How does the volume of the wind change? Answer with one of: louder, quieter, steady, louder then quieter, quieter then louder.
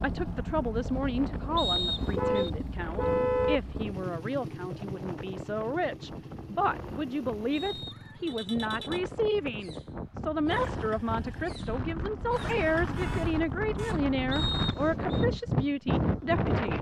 louder.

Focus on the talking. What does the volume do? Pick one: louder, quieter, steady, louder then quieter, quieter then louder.
steady.